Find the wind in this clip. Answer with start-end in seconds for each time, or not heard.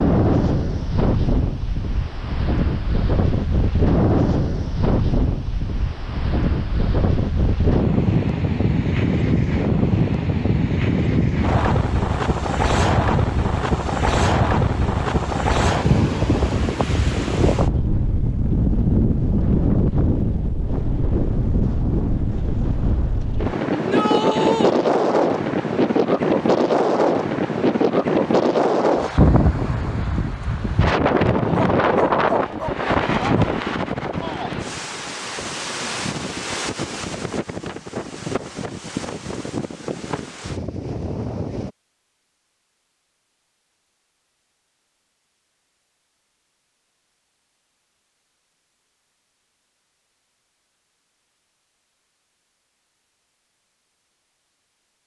0.0-41.7.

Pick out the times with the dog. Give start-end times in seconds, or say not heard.
31.5-33.5.